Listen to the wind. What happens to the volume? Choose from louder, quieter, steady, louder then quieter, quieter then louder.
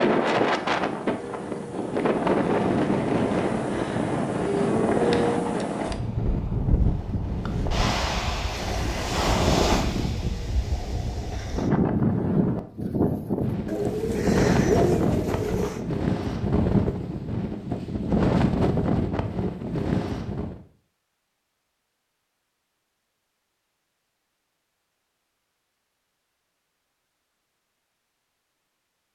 steady.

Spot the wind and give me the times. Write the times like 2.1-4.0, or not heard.
0.0-20.6.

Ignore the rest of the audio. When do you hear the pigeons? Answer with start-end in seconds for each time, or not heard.
13.7-15.8.